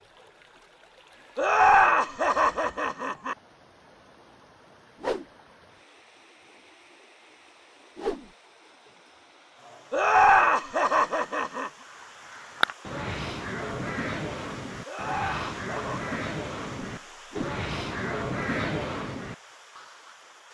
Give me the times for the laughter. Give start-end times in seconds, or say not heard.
1.4-3.4, 9.9-11.7, 14.8-16.1.